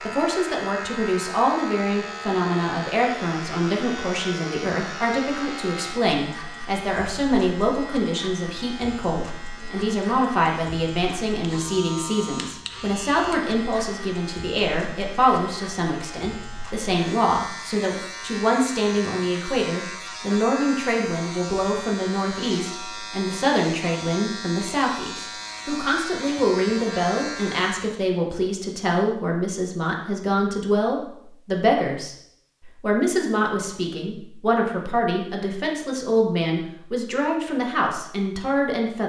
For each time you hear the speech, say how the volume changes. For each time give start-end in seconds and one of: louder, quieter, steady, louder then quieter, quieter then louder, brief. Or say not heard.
0.0-39.0 steady.